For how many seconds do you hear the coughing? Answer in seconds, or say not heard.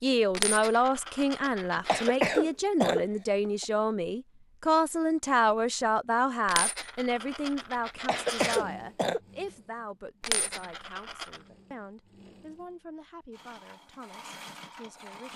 3 s.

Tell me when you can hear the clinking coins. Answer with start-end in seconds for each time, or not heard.
0.3-2.1, 6.5-8.6, 10.2-11.4.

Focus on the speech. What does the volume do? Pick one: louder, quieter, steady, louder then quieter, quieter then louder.
quieter.